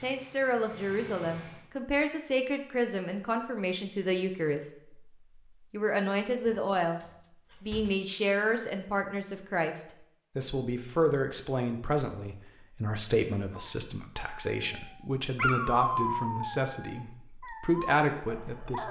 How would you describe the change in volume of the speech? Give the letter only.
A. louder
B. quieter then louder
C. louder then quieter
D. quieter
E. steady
E.